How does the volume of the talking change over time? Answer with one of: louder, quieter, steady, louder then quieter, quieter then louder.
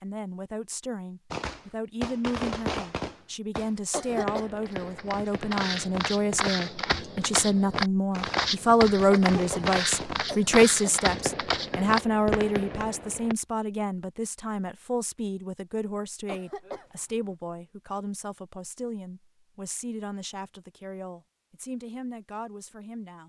louder then quieter.